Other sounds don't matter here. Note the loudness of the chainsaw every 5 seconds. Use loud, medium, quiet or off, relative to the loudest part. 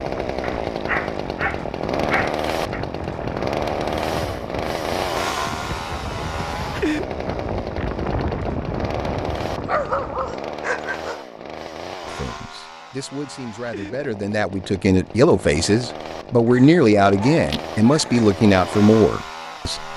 loud, loud, medium, medium.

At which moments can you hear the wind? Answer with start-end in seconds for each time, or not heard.
0.0-10.3.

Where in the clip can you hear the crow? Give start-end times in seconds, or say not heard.
not heard.